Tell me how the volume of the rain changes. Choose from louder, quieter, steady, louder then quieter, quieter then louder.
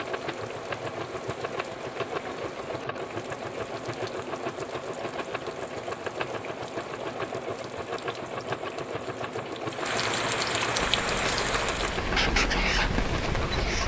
louder.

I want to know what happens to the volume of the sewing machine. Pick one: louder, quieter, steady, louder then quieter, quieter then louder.
steady.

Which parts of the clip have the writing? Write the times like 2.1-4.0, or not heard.
11.0-13.8.